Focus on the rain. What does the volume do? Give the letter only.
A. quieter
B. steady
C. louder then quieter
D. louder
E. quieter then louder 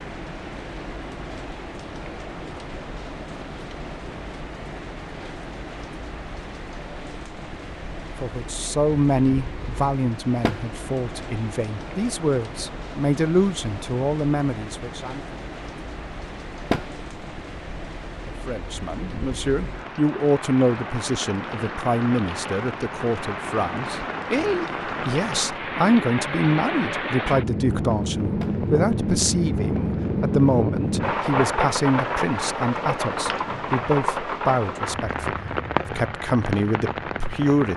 D.